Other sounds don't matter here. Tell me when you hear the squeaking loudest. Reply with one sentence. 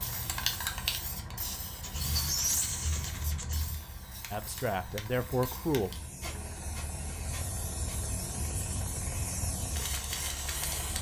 The loudest moment of the squeaking is at 2 seconds.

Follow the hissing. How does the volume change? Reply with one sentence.
The loudness of the hissing goes down, then up.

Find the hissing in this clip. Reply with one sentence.
You can hear the hissing from 0.0 to 10.9 s.